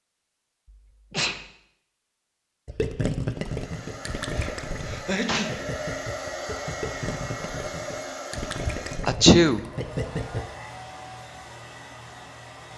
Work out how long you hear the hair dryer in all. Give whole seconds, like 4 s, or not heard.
9 s.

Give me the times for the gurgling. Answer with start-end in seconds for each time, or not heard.
2.6-10.4.